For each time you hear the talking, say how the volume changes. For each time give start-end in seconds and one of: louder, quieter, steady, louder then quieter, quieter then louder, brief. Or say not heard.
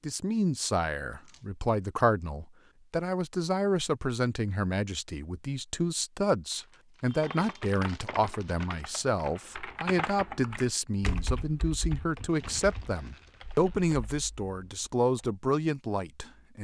0.0-16.6 steady.